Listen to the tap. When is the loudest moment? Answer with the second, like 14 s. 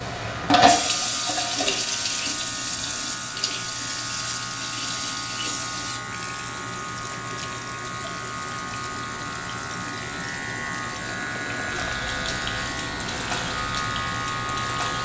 1 s.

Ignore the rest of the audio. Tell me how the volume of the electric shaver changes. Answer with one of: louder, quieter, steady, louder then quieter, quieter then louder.
louder.